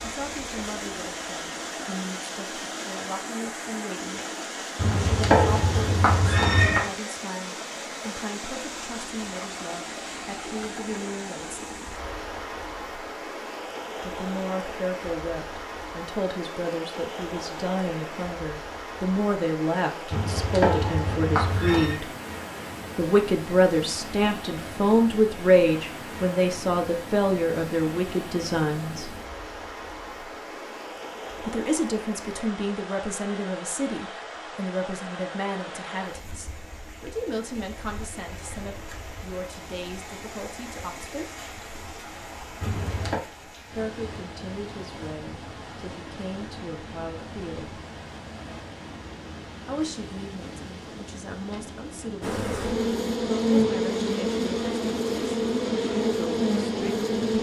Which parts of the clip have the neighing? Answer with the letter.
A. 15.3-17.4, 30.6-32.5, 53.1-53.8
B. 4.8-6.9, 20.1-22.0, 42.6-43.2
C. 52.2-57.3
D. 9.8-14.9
B.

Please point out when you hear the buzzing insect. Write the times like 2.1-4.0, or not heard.
52.2-57.3.